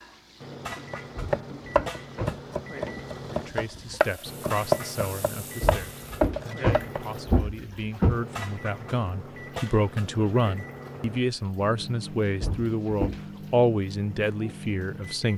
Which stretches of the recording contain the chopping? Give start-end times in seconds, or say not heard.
0.9-7.0.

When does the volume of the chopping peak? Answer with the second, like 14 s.
5 s.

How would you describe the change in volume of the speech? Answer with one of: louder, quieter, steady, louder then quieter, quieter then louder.
louder.